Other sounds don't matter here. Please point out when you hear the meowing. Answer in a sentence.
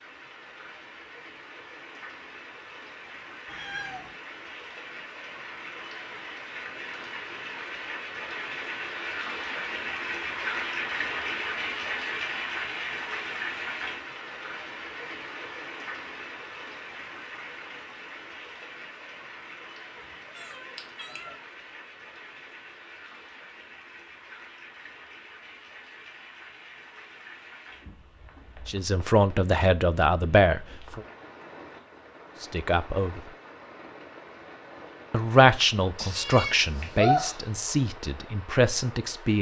The meowing can be heard from 3.5 to 4.1 s, from 20.4 to 21.4 s and from 36.0 to 37.4 s.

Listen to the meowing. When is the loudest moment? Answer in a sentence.
The loudest moment of the meowing is at 37 seconds.